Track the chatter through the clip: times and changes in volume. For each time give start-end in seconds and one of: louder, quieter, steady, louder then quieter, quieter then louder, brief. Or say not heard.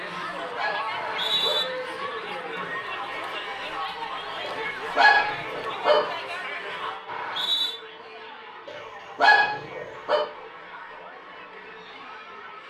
0.0-12.6 quieter.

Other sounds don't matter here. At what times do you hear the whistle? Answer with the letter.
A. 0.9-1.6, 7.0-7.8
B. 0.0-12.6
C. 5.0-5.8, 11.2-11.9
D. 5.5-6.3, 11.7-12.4
A.